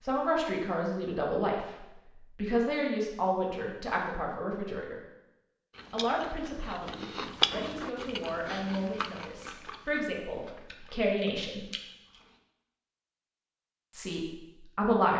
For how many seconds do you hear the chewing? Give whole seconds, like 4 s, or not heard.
7 s.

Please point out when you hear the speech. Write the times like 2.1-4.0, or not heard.
0.1-5.0, 5.9-11.7, 13.9-15.1.